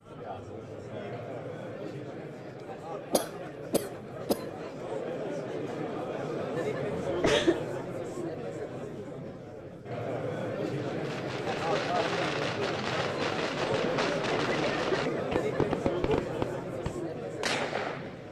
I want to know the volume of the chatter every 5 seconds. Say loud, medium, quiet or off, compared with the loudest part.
medium, loud, loud, loud.